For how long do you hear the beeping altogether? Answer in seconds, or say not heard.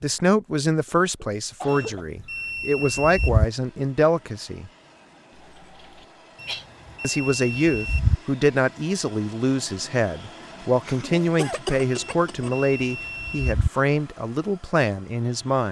5 s.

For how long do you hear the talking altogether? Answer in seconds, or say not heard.
13 s.